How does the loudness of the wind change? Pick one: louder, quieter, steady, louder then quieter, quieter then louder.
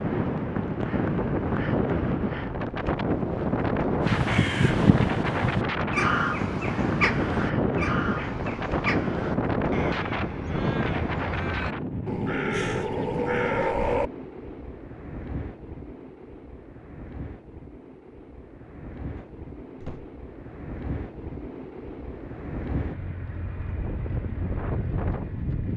quieter then louder.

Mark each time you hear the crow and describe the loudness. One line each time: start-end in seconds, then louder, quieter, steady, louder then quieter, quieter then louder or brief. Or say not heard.
4.0-14.1 quieter then louder.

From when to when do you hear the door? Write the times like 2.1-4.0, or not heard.
18.9-20.1.